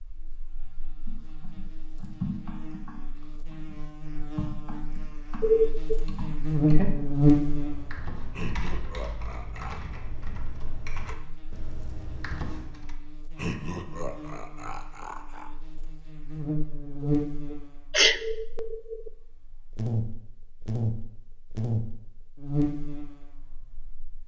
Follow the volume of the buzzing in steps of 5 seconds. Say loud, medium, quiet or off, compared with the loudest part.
quiet, loud, quiet, medium, medium.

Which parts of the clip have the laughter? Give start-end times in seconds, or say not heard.
8.3-9.8, 13.3-15.5.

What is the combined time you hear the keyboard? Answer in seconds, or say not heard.
12 s.